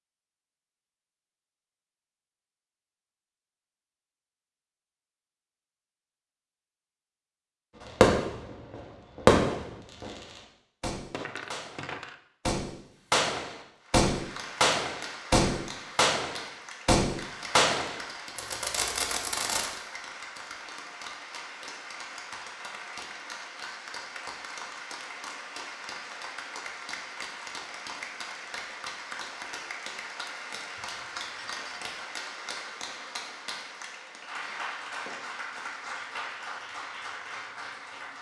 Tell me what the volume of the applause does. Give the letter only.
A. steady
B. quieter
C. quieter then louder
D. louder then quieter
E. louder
A.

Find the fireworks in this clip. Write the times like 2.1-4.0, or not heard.
7.8-19.7.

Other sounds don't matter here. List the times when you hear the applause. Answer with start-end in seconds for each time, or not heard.
13.8-38.1.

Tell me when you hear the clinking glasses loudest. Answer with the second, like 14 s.
11 s.